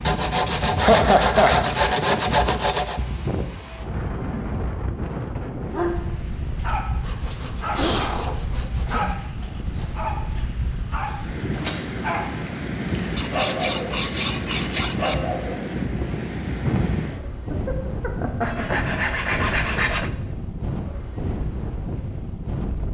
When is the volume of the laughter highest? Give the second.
1 s.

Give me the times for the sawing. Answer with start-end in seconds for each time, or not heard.
0.1-3.0, 7.0-9.2, 13.2-15.2, 18.4-20.1.